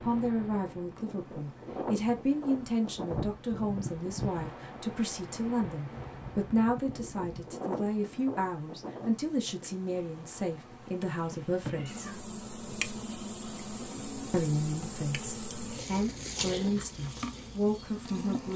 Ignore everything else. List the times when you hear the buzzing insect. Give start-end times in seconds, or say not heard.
0.0-18.5.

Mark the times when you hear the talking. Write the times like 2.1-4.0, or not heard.
0.0-12.1, 14.3-18.5.